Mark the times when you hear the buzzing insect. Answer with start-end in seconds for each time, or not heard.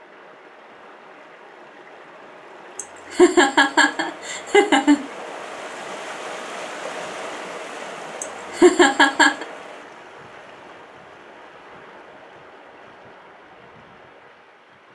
not heard.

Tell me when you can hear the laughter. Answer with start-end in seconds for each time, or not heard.
2.8-5.0, 8.2-9.4.